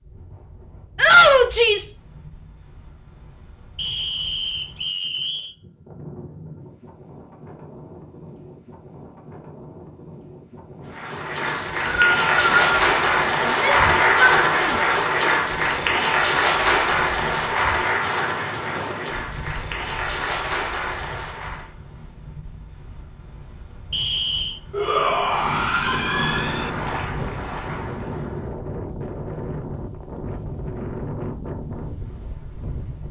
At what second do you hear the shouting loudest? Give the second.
1 s.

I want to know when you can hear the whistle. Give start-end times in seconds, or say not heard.
3.8-5.5, 11.4-12.7, 23.9-24.6.